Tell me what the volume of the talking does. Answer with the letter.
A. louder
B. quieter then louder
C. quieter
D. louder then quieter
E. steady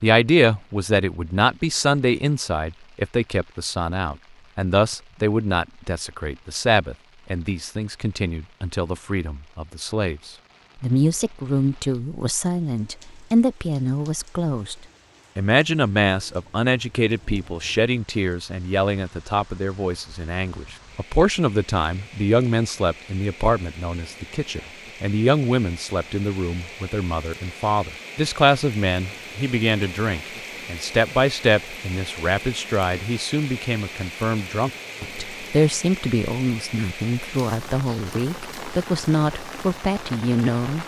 E.